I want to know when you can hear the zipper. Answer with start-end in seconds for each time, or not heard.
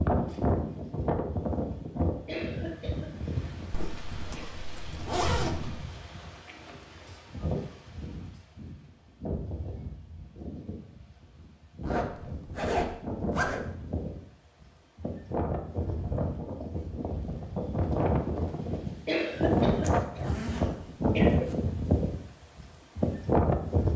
3.7-5.7, 11.8-13.6, 19.8-21.6.